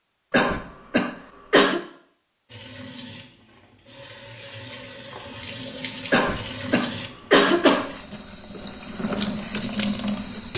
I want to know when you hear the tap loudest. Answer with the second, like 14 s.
10 s.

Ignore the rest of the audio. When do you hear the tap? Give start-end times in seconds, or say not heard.
2.5-10.5.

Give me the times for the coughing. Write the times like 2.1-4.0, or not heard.
0.3-1.8, 6.1-7.9.